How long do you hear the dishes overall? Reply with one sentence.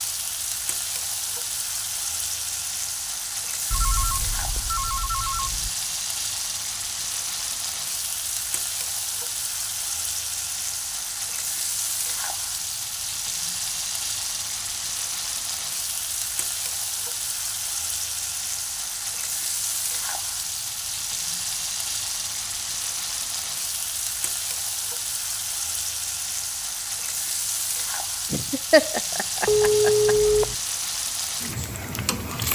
The dishes can't be heard in this clip.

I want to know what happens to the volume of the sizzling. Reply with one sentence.
The volume of the sizzling stays about the same.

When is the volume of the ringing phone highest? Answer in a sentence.
The loudest moment of the ringing phone is at 30 seconds.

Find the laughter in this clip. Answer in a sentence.
You can hear the laughter from 28.3 to 30.1 s.